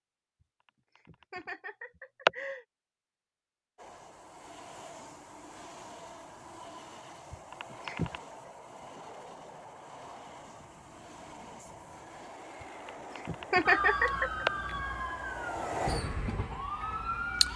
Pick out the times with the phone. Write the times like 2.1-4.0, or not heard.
not heard.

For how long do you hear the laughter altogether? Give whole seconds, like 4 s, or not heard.
4 s.